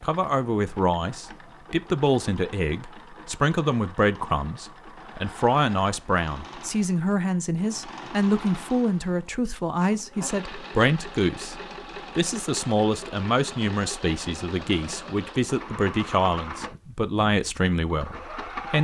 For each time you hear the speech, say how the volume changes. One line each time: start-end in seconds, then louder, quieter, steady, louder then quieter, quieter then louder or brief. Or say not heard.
0.0-18.7 steady.